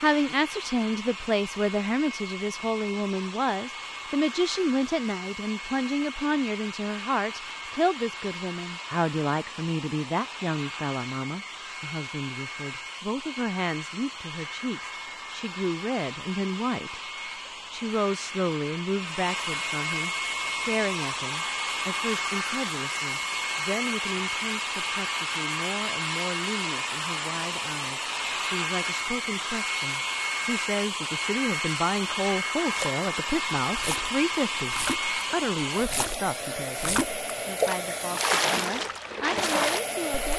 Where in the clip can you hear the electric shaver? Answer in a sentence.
You can't hear the electric shaver here.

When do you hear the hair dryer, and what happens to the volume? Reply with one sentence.
You can hear the hair dryer from 0.0 to 40.3 s, getting louder.